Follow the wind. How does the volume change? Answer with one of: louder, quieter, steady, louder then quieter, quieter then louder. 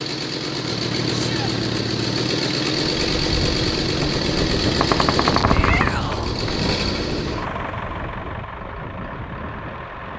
quieter.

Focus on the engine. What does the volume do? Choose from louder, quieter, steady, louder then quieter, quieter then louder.
quieter.